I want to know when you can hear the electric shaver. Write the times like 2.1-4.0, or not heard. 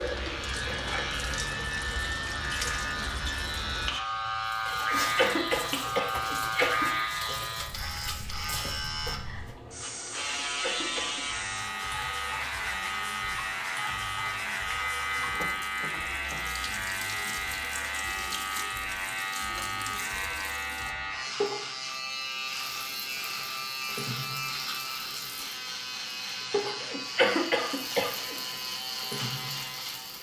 0.0-30.1.